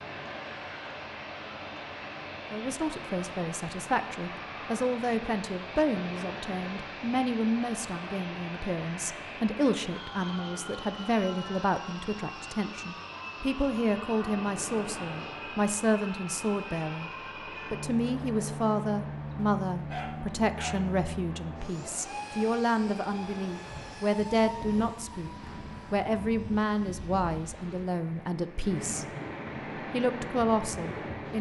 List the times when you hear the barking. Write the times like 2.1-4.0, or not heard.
19.4-20.9.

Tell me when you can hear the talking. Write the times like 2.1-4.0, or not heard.
2.5-17.1, 17.7-29.1, 29.9-31.3.